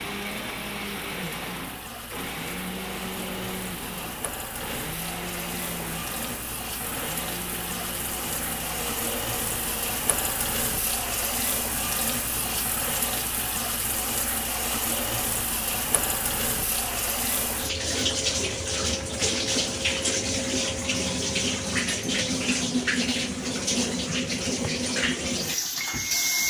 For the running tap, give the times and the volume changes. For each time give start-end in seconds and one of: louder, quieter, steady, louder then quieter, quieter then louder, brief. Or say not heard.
0.0-26.4 louder.